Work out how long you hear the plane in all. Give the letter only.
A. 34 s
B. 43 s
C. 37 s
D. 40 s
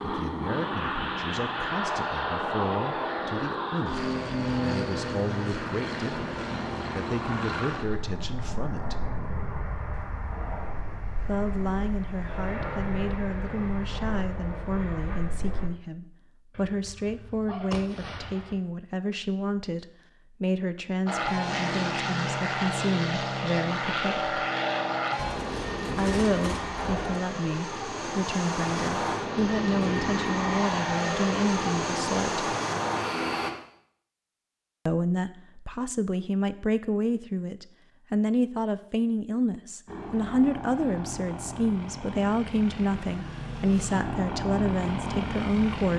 A.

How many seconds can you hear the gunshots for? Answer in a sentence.
The gunshots can be heard for 4 seconds in total.